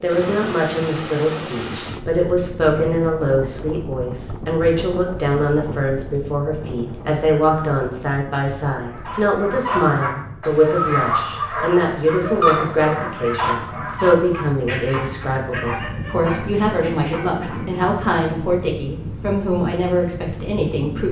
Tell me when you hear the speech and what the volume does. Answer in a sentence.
You can hear the speech from 0.0 to 21.0 s, at a steady volume.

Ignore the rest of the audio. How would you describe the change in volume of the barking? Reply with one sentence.
The volume of the barking goes down.